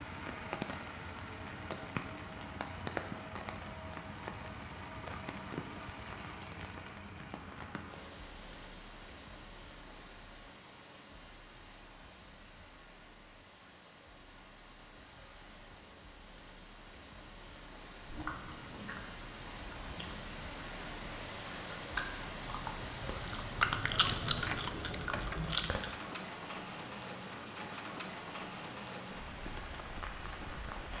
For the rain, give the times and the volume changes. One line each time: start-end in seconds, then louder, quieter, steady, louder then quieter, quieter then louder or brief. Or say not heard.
0.0-30.9 quieter then louder.